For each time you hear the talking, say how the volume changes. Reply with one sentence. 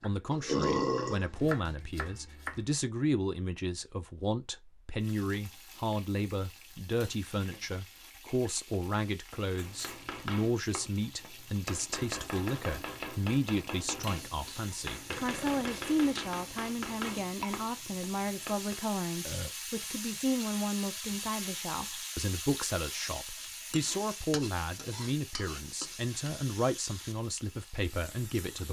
The talking can be heard from 0.0 to 28.6 s, at a steady volume.